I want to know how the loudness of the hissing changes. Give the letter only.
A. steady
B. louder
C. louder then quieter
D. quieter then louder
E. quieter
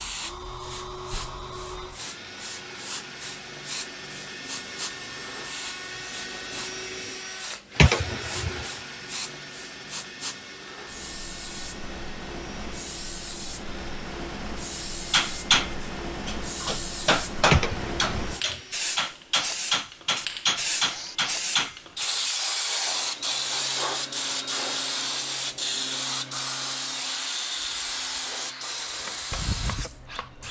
B.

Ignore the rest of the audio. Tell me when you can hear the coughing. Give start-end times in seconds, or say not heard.
7.8-8.7, 17.5-18.6.